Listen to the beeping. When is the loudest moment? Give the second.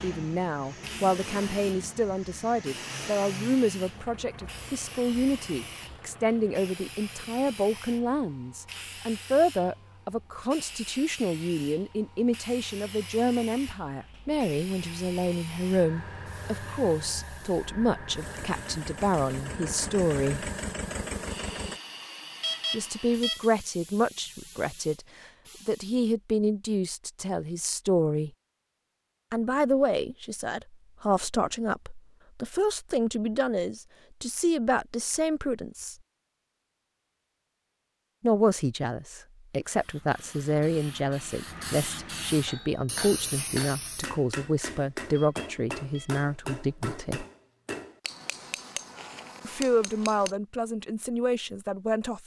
23 s.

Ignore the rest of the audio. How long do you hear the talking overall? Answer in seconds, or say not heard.
44 s.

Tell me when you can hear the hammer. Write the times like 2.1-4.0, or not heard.
42.5-50.4.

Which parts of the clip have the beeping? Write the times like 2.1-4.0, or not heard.
22.4-23.5, 45.1-46.2.